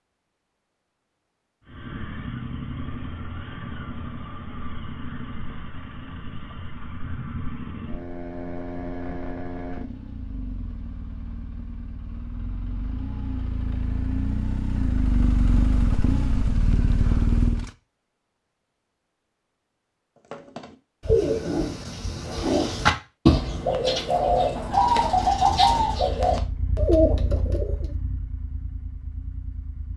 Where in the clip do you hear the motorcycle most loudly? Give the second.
17 s.